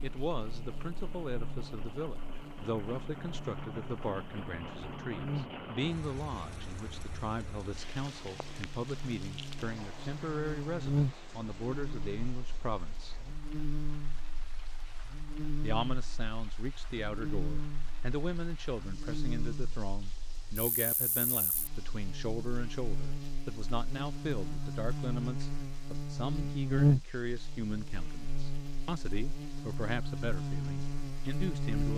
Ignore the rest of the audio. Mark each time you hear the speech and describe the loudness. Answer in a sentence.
The speech can be heard from 0.0 to 13.2 s, at a steady volume; and from 15.6 to 31.9 s, at a steady volume.